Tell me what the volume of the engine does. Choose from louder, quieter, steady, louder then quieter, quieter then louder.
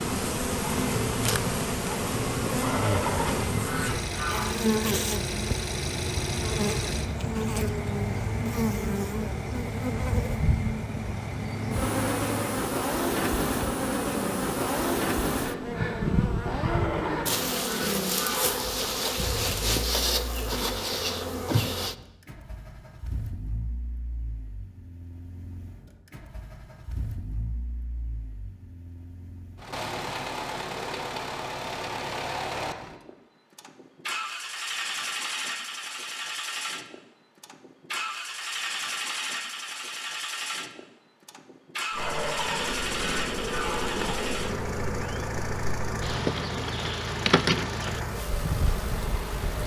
quieter then louder.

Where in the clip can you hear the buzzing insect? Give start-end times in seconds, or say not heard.
0.0-21.9, 41.9-49.6.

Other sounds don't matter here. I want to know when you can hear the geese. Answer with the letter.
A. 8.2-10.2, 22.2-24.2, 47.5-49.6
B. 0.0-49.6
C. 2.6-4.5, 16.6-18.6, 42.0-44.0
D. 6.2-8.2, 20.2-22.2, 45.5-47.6
C.